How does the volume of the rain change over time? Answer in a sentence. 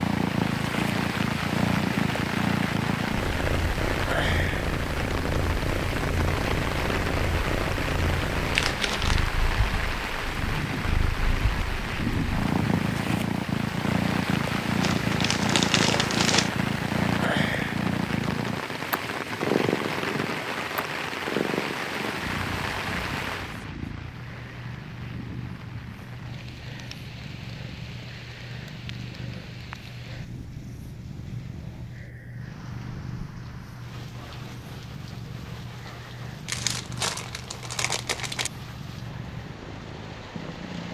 The loudness of the rain goes down.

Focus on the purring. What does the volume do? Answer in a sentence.
The loudness of the purring goes down.